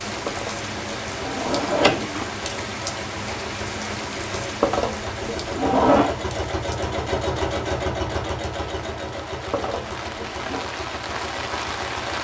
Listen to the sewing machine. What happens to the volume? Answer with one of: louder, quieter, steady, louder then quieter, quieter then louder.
louder then quieter.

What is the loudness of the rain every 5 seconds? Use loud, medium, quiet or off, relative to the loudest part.
loud, medium, loud.